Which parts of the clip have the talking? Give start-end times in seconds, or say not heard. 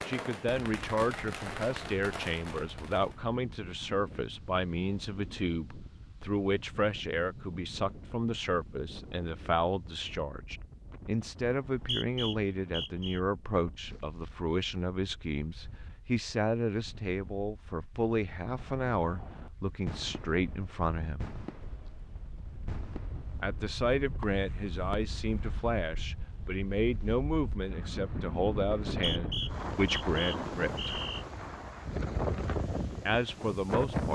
0.1-21.2, 23.4-30.9, 33.0-34.1.